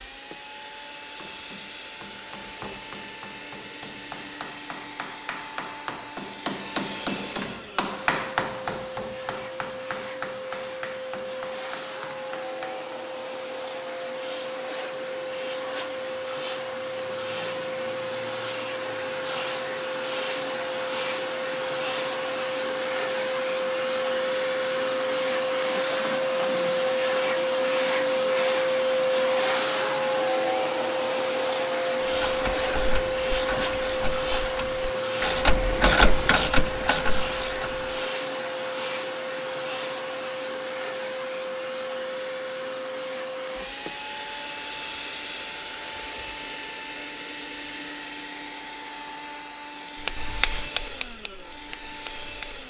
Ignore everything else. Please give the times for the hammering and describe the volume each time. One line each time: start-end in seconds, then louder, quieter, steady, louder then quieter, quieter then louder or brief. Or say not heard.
1.1-12.9 louder then quieter
50.0-52.6 brief.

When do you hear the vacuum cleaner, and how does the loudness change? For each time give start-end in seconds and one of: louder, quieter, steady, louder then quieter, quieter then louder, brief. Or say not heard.
0.0-52.6 louder then quieter.